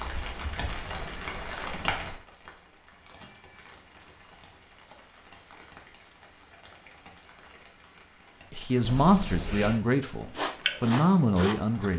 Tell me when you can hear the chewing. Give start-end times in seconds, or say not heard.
10.3-11.9.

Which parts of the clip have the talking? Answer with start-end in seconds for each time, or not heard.
8.5-11.9.